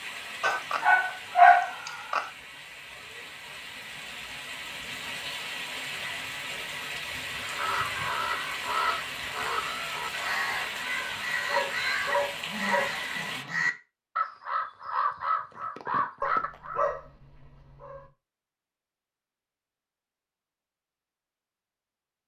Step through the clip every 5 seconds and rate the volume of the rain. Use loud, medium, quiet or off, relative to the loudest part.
medium, loud, loud, off, off.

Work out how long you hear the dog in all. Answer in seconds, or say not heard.
6 s.